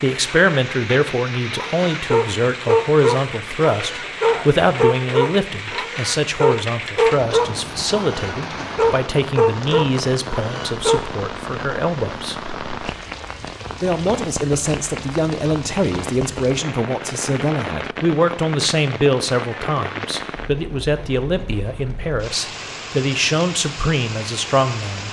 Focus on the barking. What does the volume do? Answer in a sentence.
The loudness of the barking stays about the same.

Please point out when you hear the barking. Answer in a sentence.
The barking can be heard from 1.6 to 11.1 s.